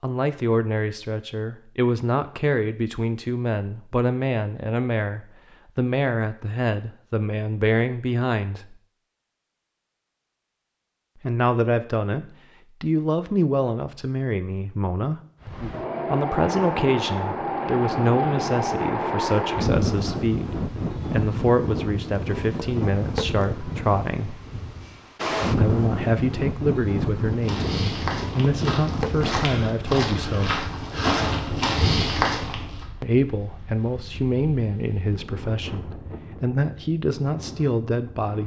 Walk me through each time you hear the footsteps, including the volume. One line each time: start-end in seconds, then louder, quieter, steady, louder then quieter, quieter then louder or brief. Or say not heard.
27.2-32.9 louder.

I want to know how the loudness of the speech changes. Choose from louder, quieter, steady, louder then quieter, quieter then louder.
steady.